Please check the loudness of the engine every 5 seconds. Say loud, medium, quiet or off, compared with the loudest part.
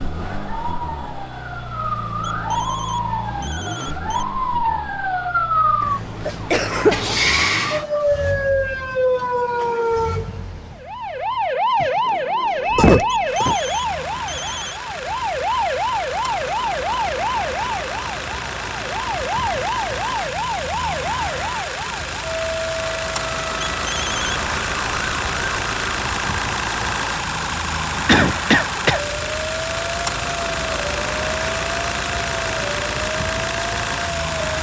medium, quiet, medium, medium, loud, loud, loud.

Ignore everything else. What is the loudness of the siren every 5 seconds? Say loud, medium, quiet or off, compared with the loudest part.
medium, loud, loud, loud, medium, medium, medium.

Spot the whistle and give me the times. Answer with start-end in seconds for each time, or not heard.
not heard.